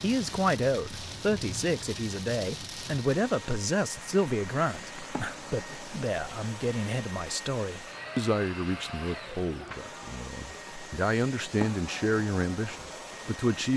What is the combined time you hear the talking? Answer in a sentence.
The talking can be heard for 14 seconds in total.